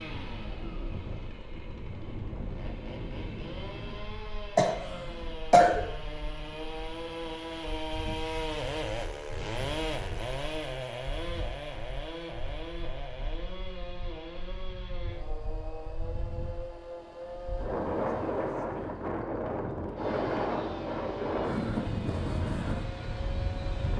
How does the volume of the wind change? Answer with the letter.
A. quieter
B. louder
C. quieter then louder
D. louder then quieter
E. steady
C.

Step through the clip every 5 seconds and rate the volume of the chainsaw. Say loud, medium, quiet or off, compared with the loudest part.
medium, loud, loud, medium, medium.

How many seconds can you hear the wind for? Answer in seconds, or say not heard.
24 s.